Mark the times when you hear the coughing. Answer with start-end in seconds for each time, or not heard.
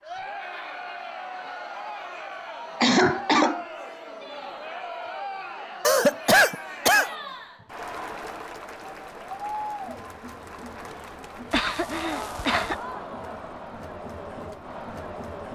2.8-3.6, 5.8-7.1, 11.5-12.8.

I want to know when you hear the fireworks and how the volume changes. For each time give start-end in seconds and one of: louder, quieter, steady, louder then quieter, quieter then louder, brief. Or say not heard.
not heard.